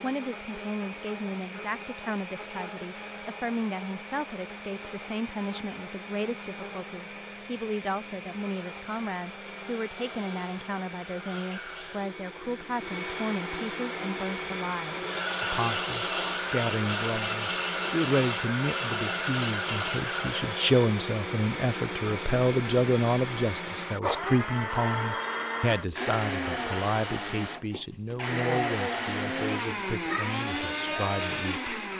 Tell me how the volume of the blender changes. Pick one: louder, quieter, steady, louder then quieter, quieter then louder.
louder.